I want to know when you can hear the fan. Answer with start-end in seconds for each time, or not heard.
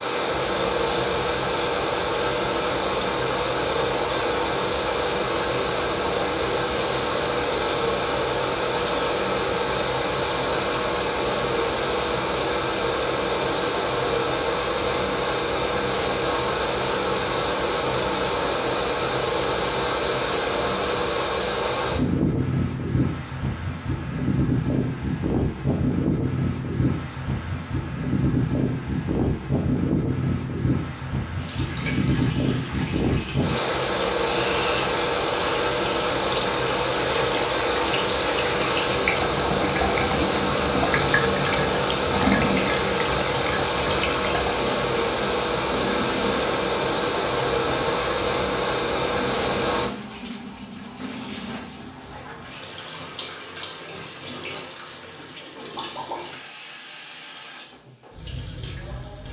0.0-49.9.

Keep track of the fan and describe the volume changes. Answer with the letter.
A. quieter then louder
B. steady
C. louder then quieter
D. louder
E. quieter
B.